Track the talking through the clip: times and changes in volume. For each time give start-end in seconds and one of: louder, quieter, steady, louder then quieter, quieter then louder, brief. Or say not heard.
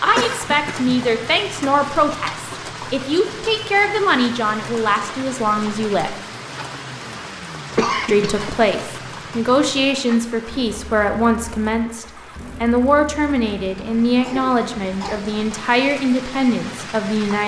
0.0-6.2 steady
8.1-17.4 steady.